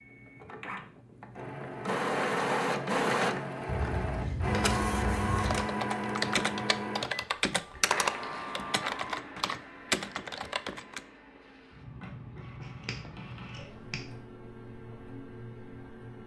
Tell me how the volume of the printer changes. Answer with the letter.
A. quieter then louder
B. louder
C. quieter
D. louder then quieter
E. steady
C.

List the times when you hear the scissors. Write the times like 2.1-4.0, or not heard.
3.6-5.7, 12.6-14.0.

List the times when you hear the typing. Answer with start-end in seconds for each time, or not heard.
5.5-11.0.